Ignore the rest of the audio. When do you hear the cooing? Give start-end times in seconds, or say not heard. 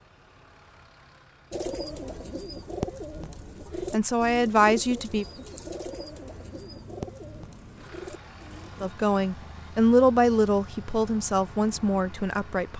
1.5-8.9.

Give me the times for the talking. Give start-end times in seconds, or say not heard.
3.9-5.2, 8.8-12.7.